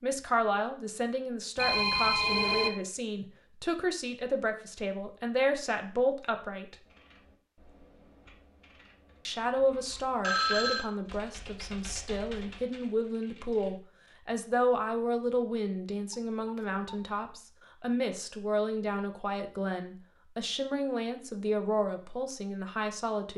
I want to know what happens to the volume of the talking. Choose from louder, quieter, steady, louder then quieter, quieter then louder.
steady.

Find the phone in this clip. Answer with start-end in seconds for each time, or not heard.
1.6-2.7, 10.2-10.8, 16.1-17.0.